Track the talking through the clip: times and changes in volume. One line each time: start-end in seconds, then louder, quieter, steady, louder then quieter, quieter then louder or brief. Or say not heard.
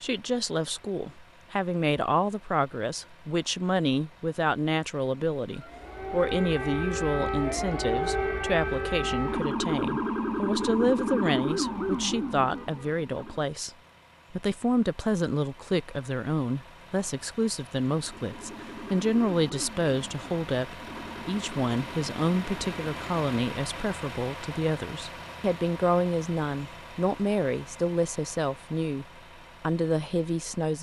0.0-13.7 steady
14.3-30.7 steady.